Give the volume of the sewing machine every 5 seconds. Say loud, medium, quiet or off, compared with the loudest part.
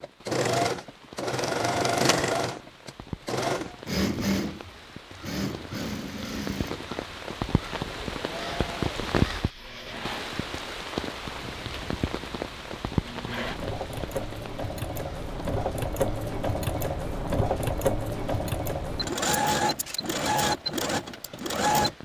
loud, medium, medium, loud, loud.